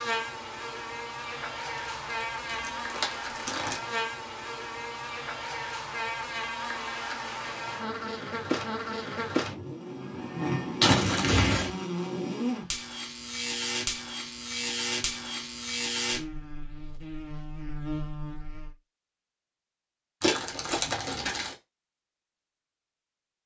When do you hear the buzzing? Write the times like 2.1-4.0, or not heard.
0.0-18.8.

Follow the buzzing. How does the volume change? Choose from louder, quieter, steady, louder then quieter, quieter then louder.
steady.